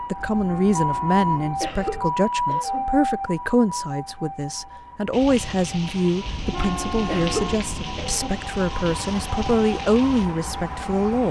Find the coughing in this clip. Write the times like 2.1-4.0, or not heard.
1.6-3.0, 7.0-8.4.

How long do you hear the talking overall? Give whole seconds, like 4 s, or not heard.
11 s.